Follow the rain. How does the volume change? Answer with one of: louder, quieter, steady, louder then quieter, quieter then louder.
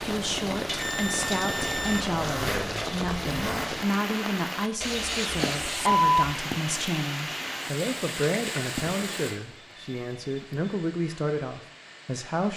quieter.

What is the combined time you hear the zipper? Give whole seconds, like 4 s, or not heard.
2 s.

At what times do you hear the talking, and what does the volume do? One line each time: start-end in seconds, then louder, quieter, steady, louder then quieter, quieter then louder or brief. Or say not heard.
0.0-12.5 steady.